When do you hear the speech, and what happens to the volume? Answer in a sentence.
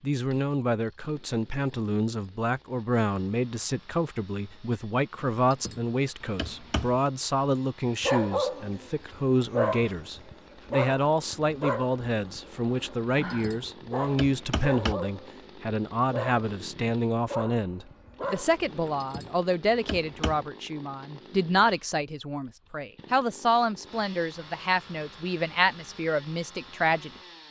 You can hear the speech from 0.0 to 27.1 s, at a steady volume.